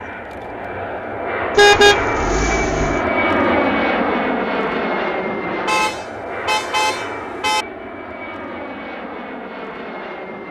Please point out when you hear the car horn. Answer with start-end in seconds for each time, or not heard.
1.6-3.0, 5.7-7.7.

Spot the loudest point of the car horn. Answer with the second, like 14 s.
2 s.